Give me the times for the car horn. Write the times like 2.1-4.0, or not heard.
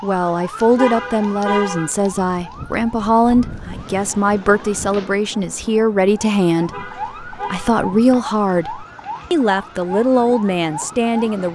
0.8-1.9, 6.7-7.8.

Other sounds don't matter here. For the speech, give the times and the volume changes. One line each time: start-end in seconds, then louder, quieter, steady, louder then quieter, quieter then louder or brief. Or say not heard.
0.0-11.4 steady.